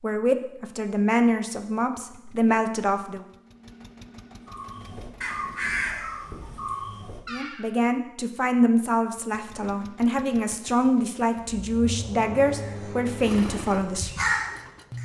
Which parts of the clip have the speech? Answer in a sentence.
You can hear the speech from 0.0 to 3.2 s and from 7.3 to 14.1 s.